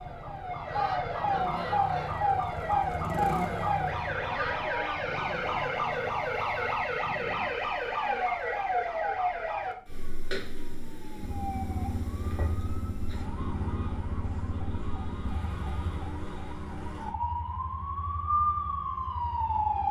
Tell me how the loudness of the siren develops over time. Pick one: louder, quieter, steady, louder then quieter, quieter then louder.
quieter then louder.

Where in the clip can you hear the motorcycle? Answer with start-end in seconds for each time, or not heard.
0.0-7.5, 11.2-19.8.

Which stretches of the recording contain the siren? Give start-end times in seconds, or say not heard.
0.0-19.8.